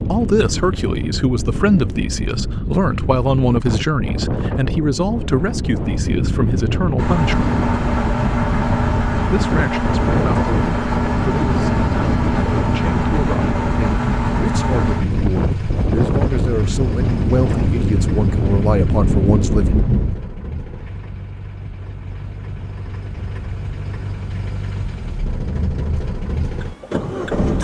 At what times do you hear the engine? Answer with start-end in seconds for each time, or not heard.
7.0-27.6.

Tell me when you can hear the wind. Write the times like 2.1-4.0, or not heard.
0.0-20.2.